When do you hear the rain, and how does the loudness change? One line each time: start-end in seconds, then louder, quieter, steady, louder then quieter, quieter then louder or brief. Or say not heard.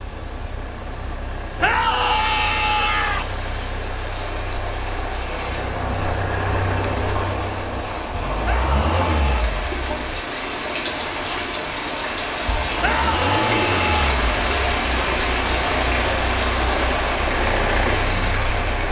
0.0-18.8 louder.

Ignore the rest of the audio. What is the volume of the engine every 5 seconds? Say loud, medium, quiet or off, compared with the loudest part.
medium, loud, loud, loud.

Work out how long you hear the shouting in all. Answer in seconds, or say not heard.
4 s.